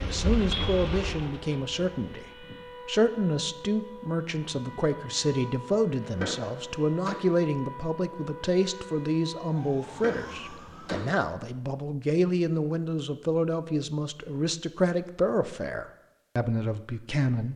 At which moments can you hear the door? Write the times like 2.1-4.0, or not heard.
6.0-7.2, 9.8-11.2.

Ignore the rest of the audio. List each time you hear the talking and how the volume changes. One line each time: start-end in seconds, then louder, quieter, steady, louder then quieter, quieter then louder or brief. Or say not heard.
0.0-17.5 steady.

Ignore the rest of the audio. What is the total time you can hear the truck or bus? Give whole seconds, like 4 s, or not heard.
2 s.